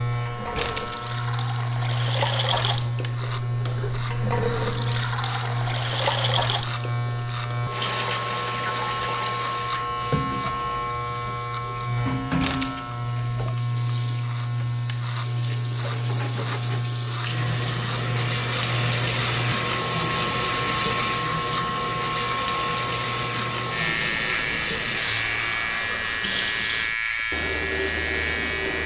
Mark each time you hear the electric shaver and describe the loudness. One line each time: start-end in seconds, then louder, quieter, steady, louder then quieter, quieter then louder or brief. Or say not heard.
0.0-28.8 steady.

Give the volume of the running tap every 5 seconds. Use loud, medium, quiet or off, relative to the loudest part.
loud, loud, medium, loud, loud, loud.